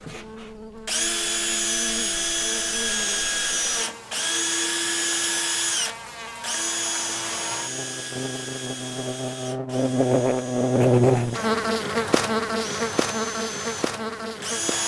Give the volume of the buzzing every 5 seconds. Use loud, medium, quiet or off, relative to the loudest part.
quiet, medium, loud.